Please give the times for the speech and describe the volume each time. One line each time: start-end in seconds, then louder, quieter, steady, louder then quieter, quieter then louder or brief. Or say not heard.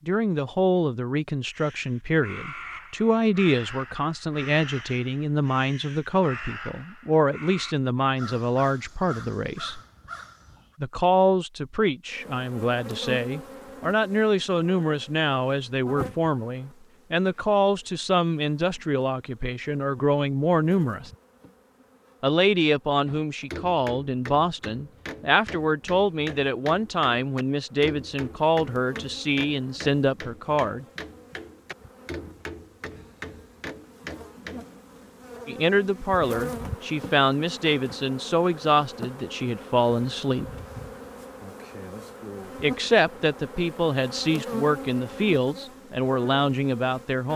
0.1-9.8 steady
10.8-21.1 steady
22.2-30.9 steady
35.5-40.5 steady
42.6-47.3 steady.